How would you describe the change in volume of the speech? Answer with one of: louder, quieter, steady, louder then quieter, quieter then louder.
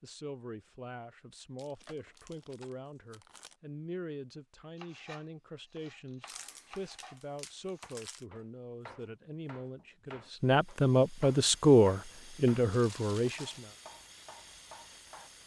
louder.